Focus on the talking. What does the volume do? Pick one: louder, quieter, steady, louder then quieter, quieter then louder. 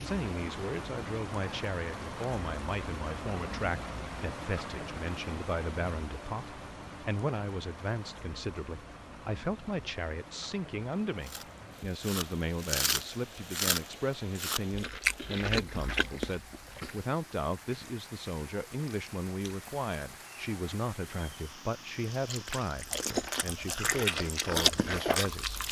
steady.